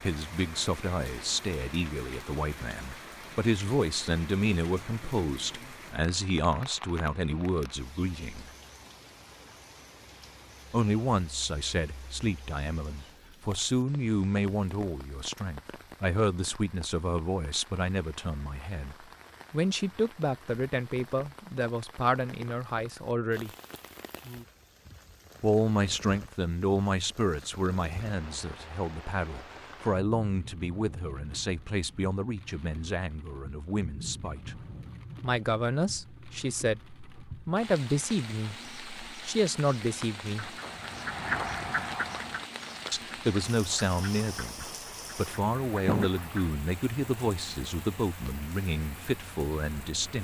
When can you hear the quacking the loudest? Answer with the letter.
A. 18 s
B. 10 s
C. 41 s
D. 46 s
C.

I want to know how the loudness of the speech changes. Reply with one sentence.
The volume of the speech stays about the same.